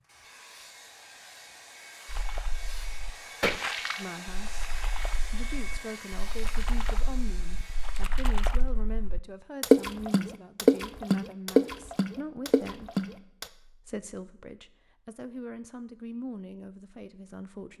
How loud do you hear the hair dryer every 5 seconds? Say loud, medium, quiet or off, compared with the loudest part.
loud, loud, off, off.